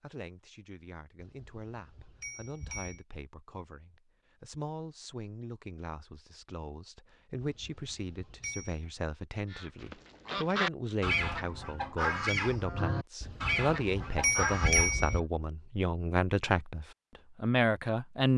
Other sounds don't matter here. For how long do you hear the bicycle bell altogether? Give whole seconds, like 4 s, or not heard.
5 s.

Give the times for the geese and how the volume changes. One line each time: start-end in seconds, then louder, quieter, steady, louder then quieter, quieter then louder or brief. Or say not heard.
9.5-15.2 steady.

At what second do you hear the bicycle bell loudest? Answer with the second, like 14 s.
15 s.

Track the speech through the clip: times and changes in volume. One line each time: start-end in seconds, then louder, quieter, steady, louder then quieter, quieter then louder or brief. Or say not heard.
0.0-18.3 louder.